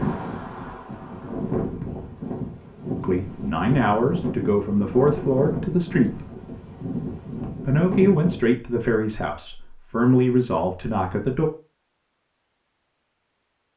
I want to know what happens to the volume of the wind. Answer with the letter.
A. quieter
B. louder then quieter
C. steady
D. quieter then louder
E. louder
C.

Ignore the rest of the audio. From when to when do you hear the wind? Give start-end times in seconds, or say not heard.
0.0-8.5.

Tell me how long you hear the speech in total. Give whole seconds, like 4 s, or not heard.
7 s.